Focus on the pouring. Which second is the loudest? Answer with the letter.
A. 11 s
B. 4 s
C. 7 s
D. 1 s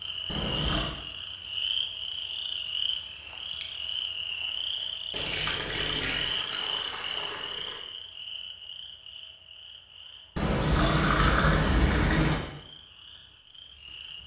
A.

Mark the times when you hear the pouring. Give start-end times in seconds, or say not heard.
0.2-0.9, 5.1-7.8, 10.3-12.3.